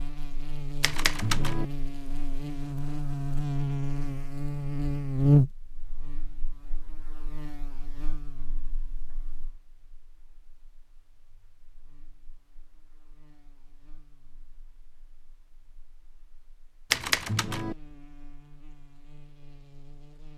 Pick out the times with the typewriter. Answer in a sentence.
The typewriter can be heard from 0.8 to 1.6 s and from 16.9 to 17.8 s.